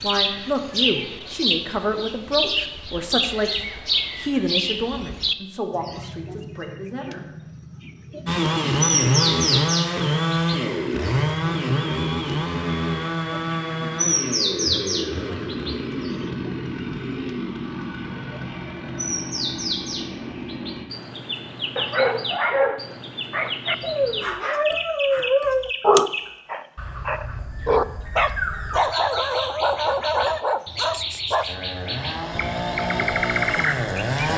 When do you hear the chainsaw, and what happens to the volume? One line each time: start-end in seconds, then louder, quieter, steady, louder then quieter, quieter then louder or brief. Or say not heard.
8.2-20.9 quieter
31.4-34.3 brief.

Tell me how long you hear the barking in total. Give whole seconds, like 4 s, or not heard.
10 s.